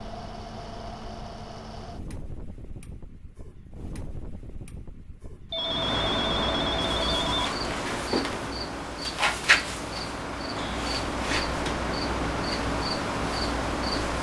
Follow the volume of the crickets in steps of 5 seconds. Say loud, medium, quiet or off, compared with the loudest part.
off, loud, medium.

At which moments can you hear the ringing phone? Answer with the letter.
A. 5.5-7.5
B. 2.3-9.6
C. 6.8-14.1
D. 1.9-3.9
A.